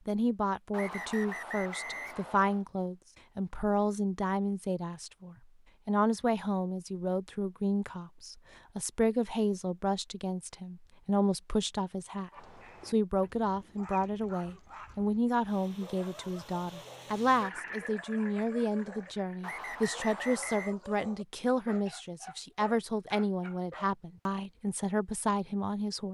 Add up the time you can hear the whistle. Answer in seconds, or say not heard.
3 s.